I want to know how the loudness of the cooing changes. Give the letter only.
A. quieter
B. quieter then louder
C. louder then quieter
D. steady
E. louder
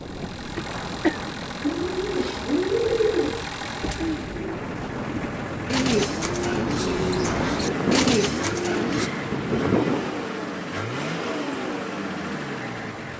B.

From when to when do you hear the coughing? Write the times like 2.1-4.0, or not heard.
0.6-1.3.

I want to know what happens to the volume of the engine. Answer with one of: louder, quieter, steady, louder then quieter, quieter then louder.
louder.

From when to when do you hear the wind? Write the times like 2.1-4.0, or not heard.
0.0-10.2.